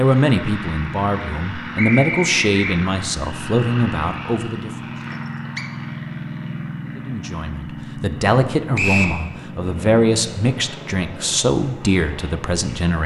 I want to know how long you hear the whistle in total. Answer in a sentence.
The whistle can be heard for 2 seconds in total.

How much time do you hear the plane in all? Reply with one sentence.
You can hear the plane for 13 seconds altogether.